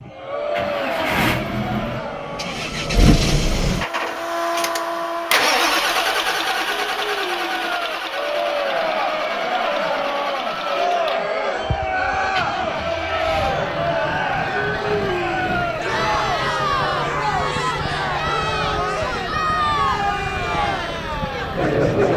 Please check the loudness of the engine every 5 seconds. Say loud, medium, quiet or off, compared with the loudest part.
loud, loud, medium, medium, medium.